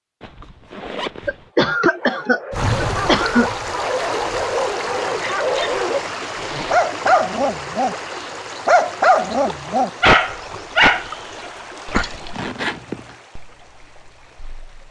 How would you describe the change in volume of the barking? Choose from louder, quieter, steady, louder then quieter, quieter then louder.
louder.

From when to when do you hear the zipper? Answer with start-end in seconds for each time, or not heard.
0.2-1.5, 6.3-6.8, 12.3-13.2.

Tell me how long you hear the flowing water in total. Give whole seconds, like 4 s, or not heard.
12 s.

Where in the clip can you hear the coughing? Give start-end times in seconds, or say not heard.
1.2-3.5, 11.8-12.4.